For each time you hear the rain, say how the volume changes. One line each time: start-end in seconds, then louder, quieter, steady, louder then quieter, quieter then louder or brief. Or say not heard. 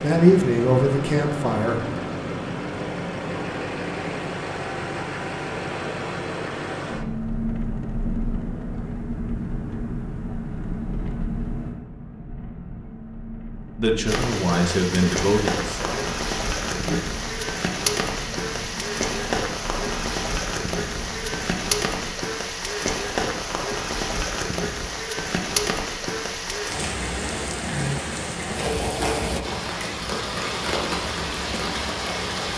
14.1-32.5 steady.